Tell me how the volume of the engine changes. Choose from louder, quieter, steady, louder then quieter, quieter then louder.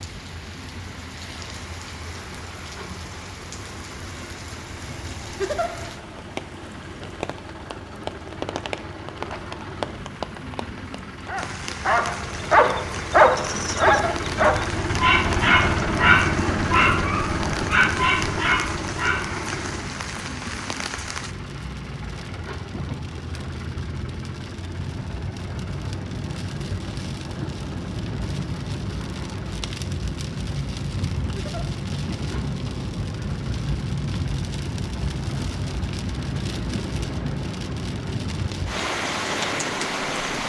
louder then quieter.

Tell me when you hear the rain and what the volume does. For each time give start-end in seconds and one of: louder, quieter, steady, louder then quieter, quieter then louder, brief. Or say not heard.
0.0-40.4 louder.